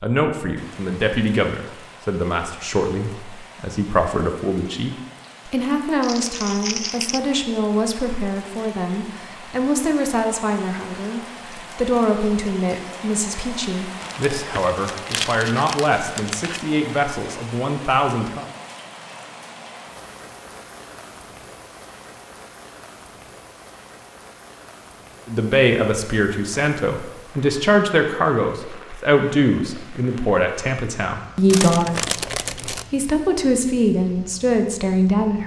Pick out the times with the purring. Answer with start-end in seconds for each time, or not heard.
not heard.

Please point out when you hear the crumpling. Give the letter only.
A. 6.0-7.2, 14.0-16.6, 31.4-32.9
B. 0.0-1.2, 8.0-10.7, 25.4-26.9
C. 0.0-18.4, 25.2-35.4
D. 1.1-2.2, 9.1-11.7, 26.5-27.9
A.